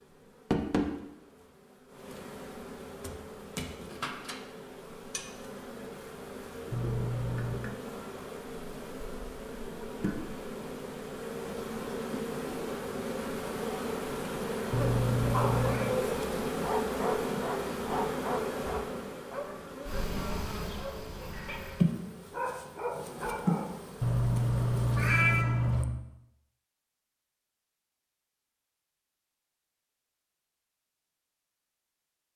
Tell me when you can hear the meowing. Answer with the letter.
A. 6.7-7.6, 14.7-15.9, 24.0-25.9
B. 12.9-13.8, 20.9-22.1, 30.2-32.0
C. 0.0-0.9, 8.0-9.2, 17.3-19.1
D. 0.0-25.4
A.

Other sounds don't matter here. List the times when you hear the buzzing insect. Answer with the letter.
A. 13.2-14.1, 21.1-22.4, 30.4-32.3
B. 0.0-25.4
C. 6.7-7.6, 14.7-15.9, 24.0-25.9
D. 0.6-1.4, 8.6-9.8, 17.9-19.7
B.